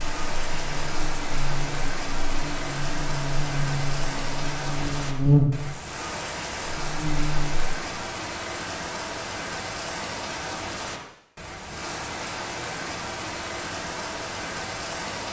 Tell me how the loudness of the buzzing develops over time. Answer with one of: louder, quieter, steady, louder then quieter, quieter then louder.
louder then quieter.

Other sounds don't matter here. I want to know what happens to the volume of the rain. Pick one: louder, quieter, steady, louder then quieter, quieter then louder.
steady.